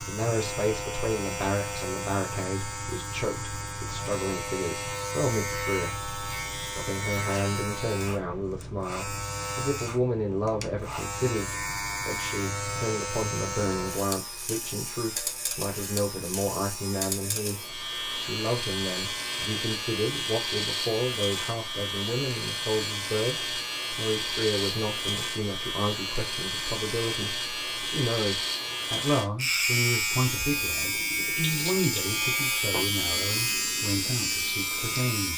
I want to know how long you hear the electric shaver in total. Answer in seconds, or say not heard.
35 s.